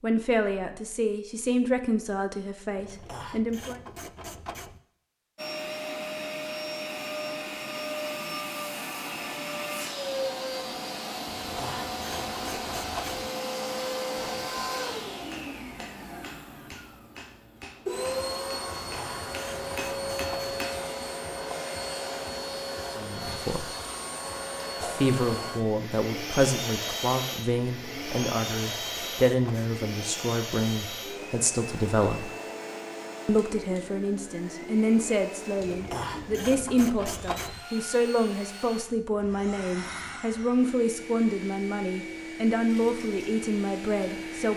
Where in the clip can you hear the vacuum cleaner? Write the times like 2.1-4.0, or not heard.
5.3-44.5.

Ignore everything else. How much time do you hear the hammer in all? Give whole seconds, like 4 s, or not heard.
7 s.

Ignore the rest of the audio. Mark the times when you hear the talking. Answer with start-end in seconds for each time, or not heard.
0.0-3.8, 22.9-23.7, 24.8-32.3, 33.2-44.5.